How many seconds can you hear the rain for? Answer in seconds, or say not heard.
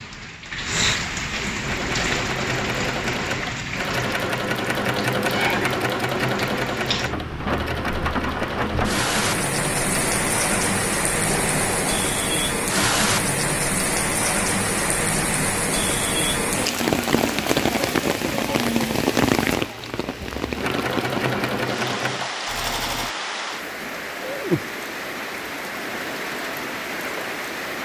28 s.